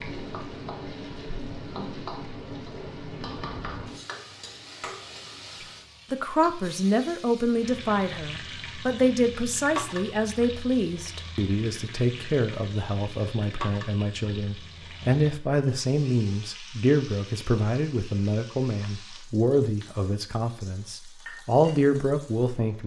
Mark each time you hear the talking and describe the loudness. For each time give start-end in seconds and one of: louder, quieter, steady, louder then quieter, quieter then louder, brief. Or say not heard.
5.6-22.8 steady.